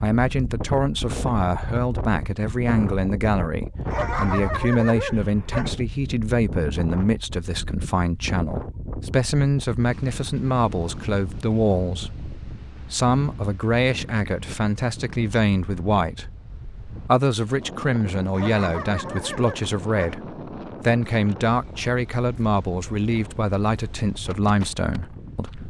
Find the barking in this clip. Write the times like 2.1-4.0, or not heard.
3.9-5.8, 18.3-20.1.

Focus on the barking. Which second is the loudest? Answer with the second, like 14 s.
4 s.